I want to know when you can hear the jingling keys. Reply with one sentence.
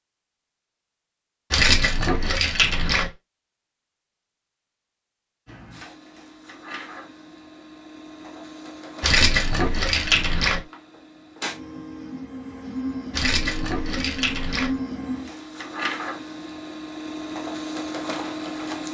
You can hear the jingling keys from 1.5 to 3.1 s, from 9.0 to 10.6 s and from 13.1 to 14.7 s.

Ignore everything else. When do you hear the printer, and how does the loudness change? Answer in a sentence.
You can hear the printer from 5.5 to 18.9 s, getting louder.